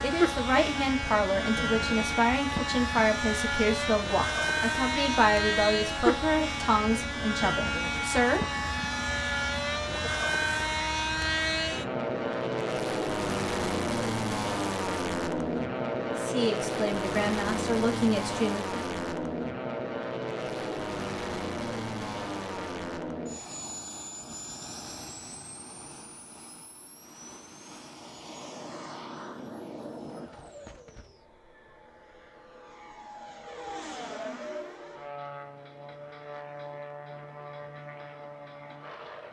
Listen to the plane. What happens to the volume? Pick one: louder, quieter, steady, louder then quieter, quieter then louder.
quieter.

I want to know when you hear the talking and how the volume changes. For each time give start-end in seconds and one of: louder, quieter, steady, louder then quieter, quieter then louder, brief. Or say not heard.
0.0-8.7 steady
16.1-18.9 brief.